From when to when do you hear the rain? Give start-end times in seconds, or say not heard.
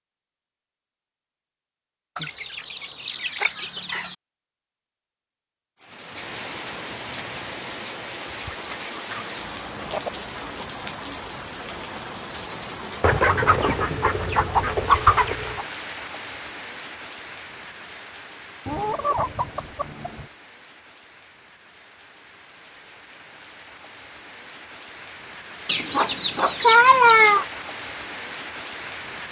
5.8-29.2.